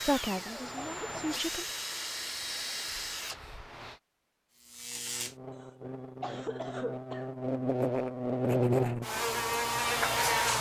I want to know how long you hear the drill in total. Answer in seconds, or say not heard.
4 s.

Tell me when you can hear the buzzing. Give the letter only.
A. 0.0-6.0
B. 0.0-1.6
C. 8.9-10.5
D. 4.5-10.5
D.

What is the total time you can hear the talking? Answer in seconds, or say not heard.
2 s.